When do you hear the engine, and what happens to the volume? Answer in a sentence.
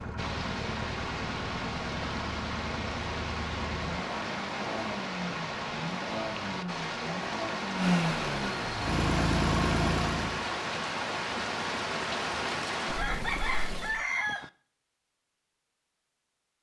You can hear the engine from 0.0 to 10.5 s, getting louder.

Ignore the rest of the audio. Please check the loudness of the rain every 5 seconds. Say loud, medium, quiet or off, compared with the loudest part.
loud, loud, loud, off.